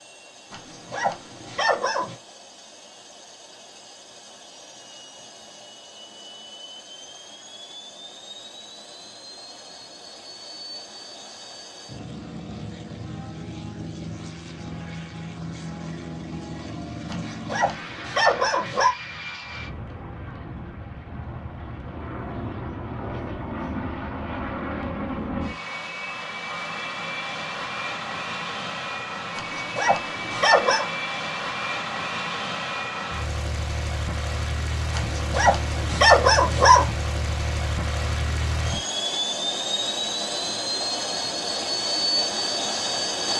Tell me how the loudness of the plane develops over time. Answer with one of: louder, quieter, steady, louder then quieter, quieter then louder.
louder.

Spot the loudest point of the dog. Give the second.
36 s.